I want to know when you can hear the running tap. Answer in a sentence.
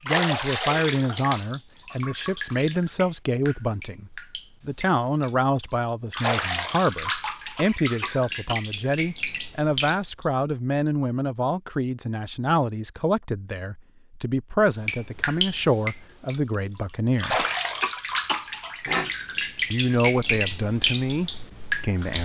The running tap can be heard from 0.1 to 10.2 s and from 14.8 to 22.1 s.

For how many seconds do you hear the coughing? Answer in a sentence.
The coughing can be heard for 3 seconds in total.